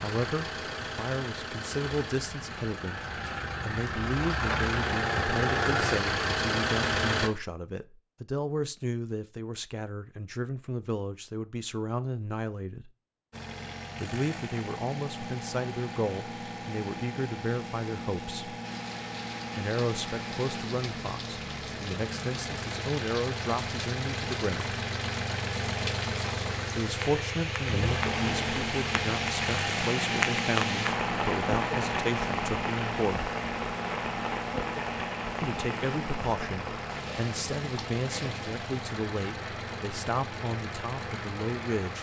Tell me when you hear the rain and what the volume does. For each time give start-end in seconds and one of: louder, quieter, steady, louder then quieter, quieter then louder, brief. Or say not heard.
18.6-41.9 louder then quieter.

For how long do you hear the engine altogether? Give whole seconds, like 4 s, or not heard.
36 s.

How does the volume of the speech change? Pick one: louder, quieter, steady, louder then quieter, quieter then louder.
steady.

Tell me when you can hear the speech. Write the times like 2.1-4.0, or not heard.
0.0-3.0, 3.6-12.9, 14.0-18.6, 19.6-24.8, 26.8-33.3, 35.4-41.9.